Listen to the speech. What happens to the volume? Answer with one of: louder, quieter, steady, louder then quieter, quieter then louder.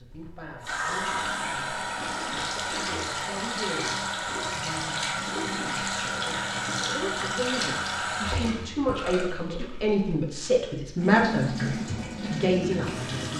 louder.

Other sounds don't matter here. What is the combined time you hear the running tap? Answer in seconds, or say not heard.
13 s.